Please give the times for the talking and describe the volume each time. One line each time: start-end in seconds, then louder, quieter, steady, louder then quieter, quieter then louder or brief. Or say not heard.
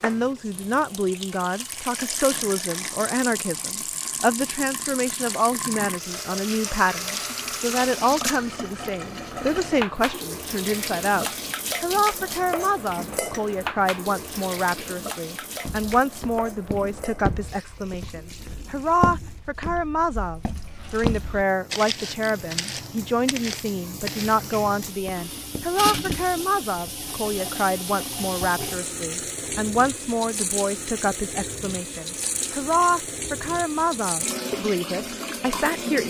0.0-36.0 steady.